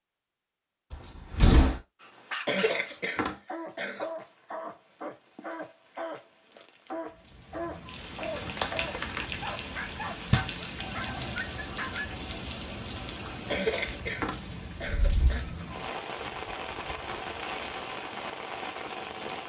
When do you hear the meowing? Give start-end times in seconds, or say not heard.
not heard.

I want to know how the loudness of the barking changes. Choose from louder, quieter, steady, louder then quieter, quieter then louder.
steady.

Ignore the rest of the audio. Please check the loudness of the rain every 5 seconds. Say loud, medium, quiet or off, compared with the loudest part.
off, loud, loud, loud.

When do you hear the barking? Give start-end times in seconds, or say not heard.
2.0-12.2.